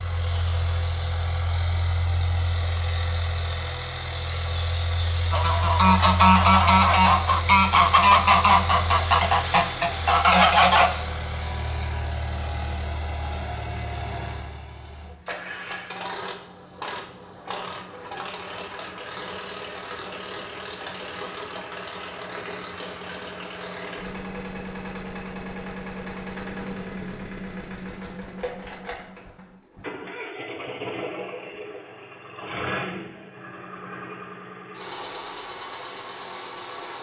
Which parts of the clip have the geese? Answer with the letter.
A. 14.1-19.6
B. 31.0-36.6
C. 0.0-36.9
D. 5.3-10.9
D.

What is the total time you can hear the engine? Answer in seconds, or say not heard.
37 s.